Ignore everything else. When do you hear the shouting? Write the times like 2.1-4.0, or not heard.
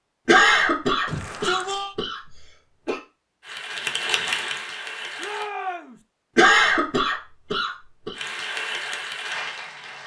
1.1-1.9, 5.2-6.0.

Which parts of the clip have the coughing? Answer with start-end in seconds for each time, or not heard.
0.2-3.0, 6.3-8.2.